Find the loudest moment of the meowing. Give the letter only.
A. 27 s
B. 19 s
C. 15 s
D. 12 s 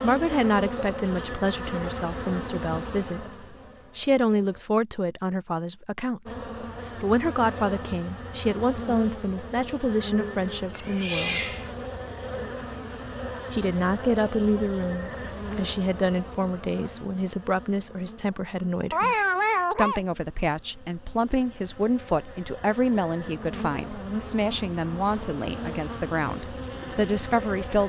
B.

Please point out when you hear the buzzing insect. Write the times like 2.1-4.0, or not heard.
0.0-4.7, 6.2-27.8.